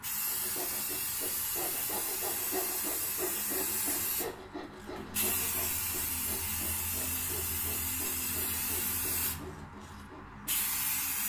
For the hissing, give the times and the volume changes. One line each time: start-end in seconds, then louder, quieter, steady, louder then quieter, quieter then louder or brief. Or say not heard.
0.0-11.2 steady.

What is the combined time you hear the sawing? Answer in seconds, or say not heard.
10 s.